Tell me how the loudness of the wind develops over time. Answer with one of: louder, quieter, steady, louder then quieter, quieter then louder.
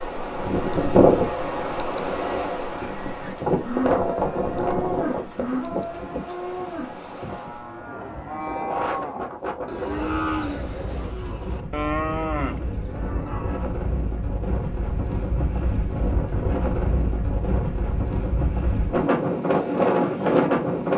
quieter then louder.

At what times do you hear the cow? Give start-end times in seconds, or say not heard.
2.7-13.7.